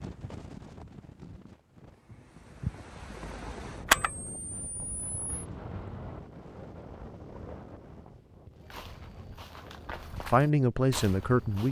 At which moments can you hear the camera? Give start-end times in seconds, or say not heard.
3.9-5.3.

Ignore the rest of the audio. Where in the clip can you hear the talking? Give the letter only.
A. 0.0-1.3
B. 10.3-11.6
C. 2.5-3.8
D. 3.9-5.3
B.